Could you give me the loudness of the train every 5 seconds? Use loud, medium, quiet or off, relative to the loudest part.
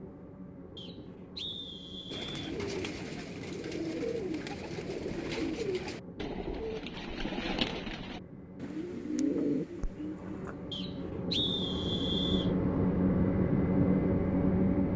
quiet, quiet, loud.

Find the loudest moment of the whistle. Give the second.
11 s.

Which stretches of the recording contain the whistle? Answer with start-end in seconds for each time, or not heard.
0.8-2.5, 10.7-12.5.